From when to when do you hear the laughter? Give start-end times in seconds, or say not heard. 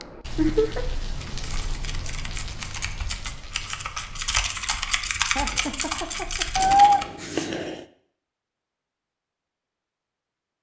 0.3-0.8, 5.3-6.7.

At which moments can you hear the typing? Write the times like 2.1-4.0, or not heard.
1.2-7.0.